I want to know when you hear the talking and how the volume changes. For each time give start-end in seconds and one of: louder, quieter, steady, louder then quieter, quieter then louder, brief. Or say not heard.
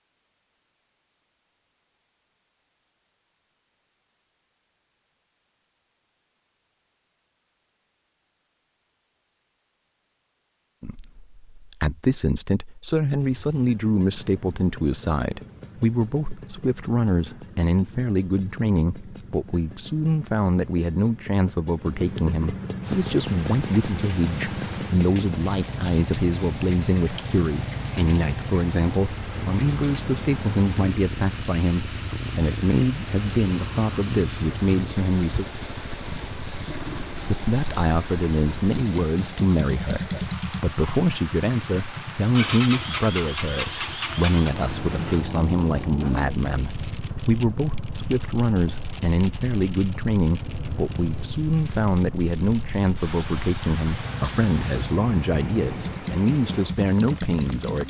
10.8-35.5 steady
37.2-57.8 steady.